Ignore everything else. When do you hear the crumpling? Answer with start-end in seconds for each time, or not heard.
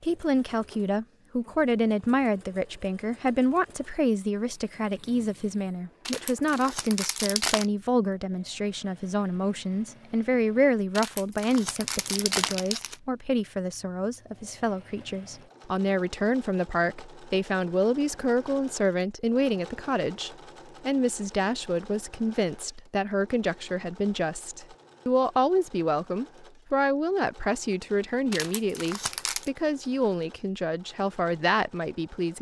6.0-7.7, 10.9-12.9, 28.3-29.5.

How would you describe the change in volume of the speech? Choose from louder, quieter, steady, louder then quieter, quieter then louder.
steady.